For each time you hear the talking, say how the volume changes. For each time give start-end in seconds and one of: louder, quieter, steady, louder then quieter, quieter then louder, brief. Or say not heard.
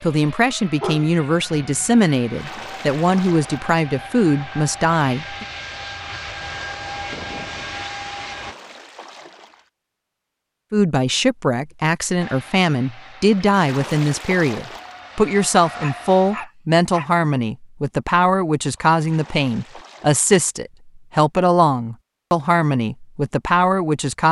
0.0-5.5 steady
10.7-24.2 steady.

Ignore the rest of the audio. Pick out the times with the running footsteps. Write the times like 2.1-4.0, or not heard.
not heard.